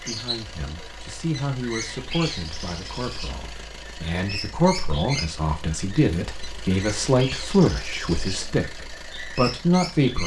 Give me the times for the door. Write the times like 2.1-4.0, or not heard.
not heard.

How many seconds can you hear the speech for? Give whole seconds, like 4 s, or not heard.
10 s.